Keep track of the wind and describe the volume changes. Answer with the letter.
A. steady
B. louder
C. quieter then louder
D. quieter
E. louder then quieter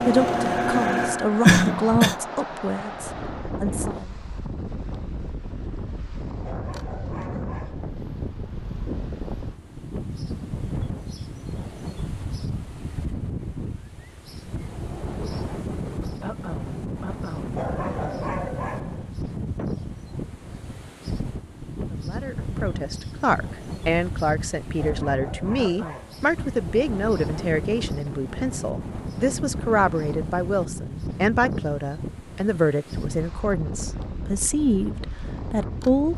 A.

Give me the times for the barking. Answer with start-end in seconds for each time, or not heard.
6.4-7.9, 17.5-19.1, 24.8-26.3.